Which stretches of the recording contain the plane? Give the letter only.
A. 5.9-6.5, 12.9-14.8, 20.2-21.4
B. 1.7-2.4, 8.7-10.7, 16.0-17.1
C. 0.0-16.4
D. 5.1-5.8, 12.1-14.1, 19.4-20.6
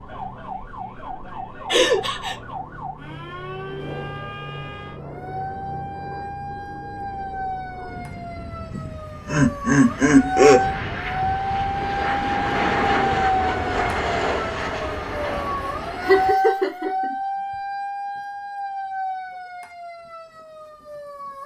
C.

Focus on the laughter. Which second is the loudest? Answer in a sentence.
The loudest moment of the laughter is at 10 seconds.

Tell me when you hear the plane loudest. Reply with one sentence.
The volume of the plane peaks at 13 seconds.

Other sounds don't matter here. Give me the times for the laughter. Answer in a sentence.
You can hear the laughter from 1.7 to 2.4 s, from 8.7 to 10.7 s and from 16.0 to 17.1 s.